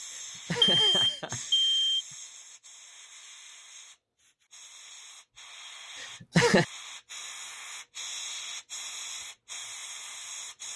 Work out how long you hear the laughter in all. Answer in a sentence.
The laughter can be heard for 3 seconds in total.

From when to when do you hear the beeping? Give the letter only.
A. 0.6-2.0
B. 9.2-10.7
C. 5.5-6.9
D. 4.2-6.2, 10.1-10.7
A.